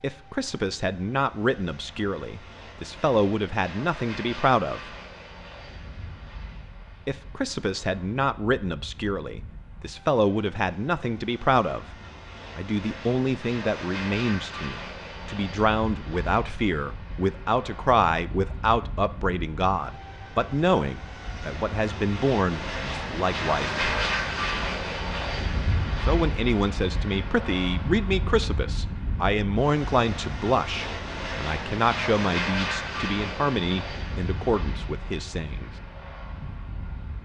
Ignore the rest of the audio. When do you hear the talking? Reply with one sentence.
You can hear the talking from 0.0 to 4.8 s, from 7.0 to 11.8 s, from 12.6 to 24.2 s and from 26.0 to 35.7 s.